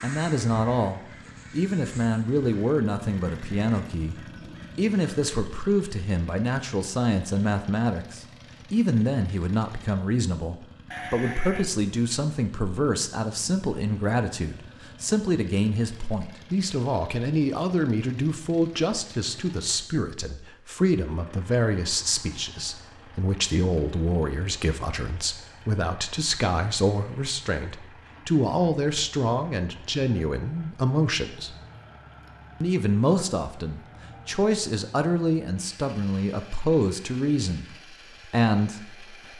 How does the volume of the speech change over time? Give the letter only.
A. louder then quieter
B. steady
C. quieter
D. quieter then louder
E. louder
B.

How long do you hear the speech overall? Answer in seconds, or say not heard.
38 s.